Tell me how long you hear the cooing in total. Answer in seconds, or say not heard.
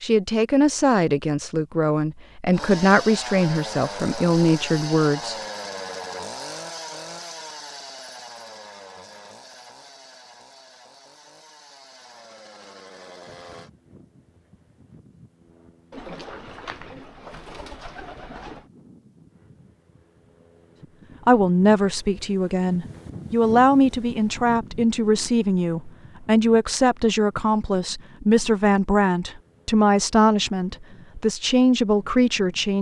3 s.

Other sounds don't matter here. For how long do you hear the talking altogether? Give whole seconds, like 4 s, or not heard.
17 s.